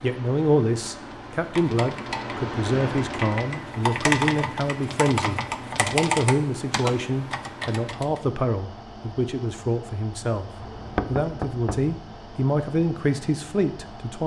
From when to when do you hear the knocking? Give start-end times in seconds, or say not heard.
10.6-11.9.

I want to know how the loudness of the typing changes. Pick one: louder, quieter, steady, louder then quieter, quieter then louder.
louder then quieter.